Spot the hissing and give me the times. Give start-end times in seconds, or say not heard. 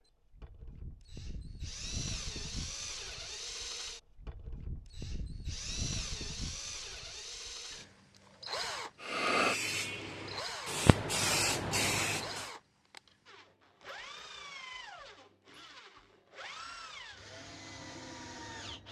9.0-12.5.